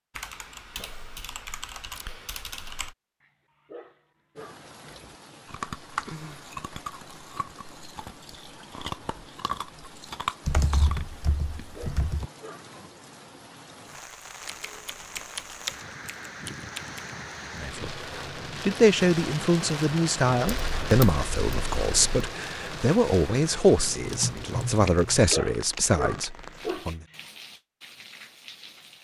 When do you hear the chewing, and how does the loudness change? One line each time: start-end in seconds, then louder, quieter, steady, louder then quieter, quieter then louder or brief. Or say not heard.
4.9-11.1 quieter then louder.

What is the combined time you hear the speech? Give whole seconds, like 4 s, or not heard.
9 s.